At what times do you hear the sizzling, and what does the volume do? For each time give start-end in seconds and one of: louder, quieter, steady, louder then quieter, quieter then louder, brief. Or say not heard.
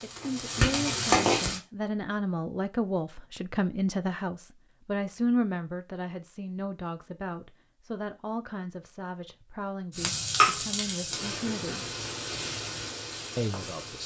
0.0-1.6 brief
9.9-14.0 quieter.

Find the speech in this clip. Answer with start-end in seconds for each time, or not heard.
0.0-11.8, 13.3-14.0.